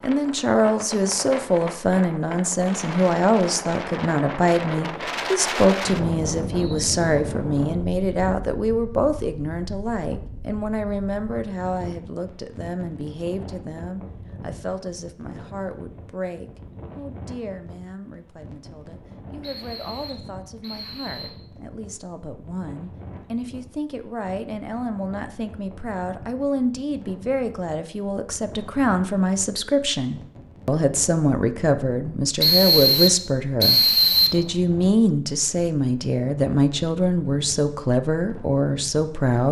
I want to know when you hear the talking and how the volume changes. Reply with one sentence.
You can hear the talking from 0.0 to 39.4 s, getting quieter then louder.